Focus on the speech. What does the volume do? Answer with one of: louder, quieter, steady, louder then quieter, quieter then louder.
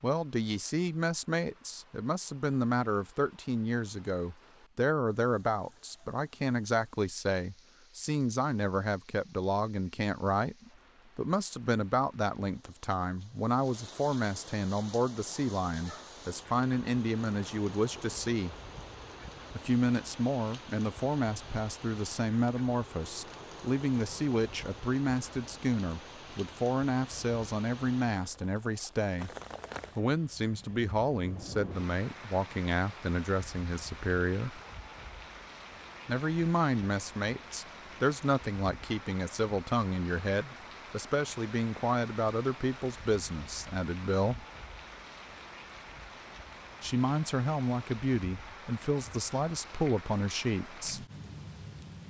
steady.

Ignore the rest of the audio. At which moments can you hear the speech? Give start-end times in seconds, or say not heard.
0.0-18.6, 19.6-29.3, 29.9-34.6, 36.0-44.5, 46.8-51.0.